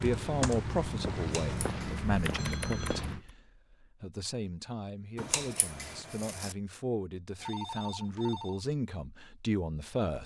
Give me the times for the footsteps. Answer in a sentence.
You can hear the footsteps from 0.0 to 3.2 s.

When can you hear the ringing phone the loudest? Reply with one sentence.
The volume of the ringing phone peaks at 8 seconds.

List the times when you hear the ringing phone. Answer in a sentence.
The ringing phone can be heard from 2.4 to 3.0 s and from 7.3 to 8.6 s.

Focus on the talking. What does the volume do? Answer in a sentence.
The volume of the talking goes down, then up.